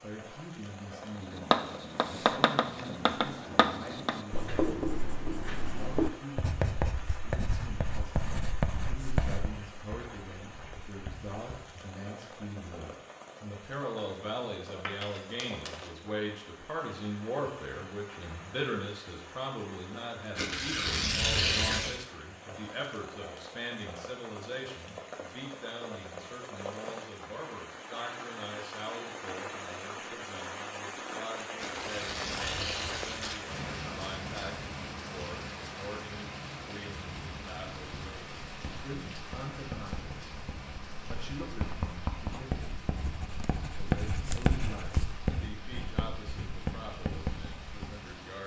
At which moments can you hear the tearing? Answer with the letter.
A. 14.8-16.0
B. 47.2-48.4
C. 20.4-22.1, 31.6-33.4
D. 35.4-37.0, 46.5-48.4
C.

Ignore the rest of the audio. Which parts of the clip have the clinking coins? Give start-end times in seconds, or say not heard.
14.8-16.0.